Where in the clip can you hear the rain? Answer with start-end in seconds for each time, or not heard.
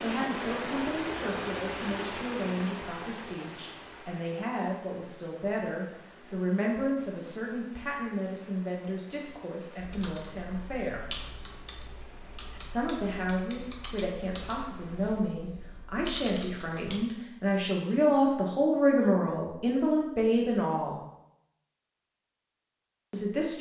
0.0-15.2.